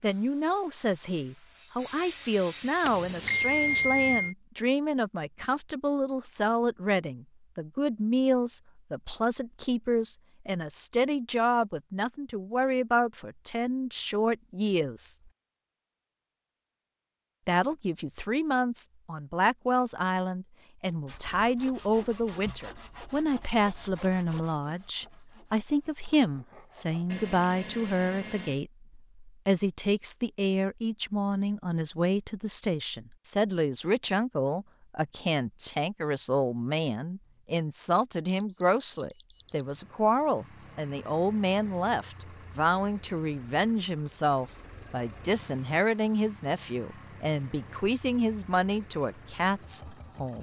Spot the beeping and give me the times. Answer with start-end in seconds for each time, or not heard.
2.9-4.3, 27.1-28.6, 38.3-39.6.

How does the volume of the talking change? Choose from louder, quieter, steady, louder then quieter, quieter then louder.
steady.